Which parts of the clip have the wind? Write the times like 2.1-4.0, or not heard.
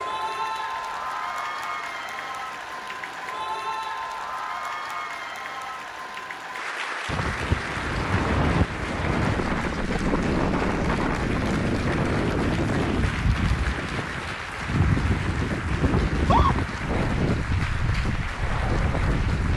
7.0-19.5.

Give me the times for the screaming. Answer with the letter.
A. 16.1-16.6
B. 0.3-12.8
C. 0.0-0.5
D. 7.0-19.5
A.